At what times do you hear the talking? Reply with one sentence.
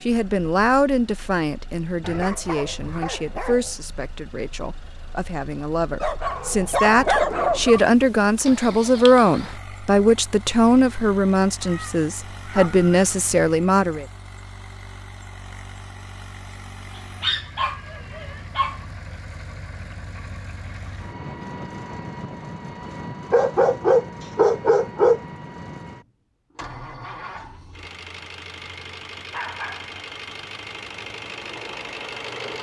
You can hear the talking from 0.0 to 14.1 s.